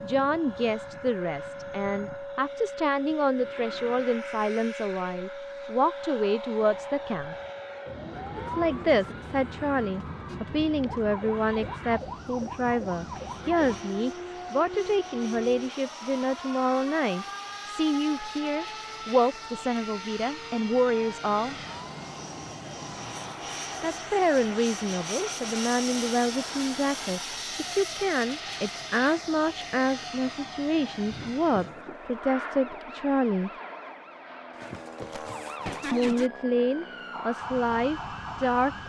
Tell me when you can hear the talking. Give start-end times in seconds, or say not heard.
0.0-7.3, 8.3-21.6, 23.8-33.5, 35.9-38.8.